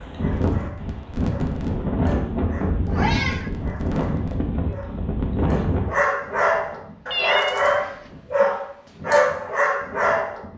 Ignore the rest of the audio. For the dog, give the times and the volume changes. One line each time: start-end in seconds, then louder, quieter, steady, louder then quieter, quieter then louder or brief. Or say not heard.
0.0-10.4 louder.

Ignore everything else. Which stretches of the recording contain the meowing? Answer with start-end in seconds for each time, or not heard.
2.9-3.5, 7.1-7.8.